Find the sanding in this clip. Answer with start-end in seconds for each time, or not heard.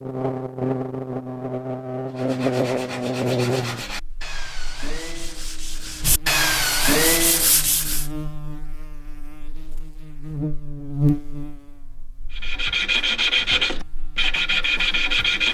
2.1-8.1, 12.3-15.4.